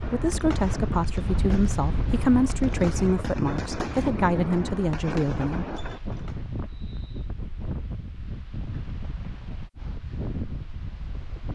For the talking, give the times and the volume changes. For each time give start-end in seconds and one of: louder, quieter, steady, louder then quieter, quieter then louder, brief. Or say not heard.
0.0-5.8 steady.